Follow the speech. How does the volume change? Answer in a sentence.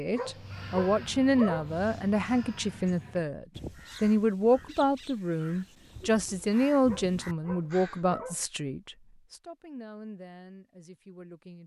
The volume of the speech goes down.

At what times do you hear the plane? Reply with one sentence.
You can't hear the plane here.